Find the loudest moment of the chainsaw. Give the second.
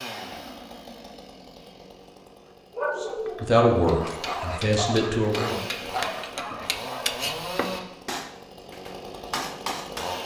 7 s.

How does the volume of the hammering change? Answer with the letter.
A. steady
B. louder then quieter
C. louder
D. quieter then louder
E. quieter
C.